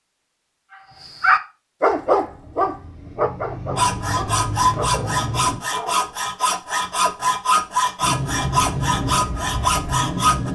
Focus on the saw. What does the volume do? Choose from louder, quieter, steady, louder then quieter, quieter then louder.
steady.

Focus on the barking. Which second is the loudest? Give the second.
2 s.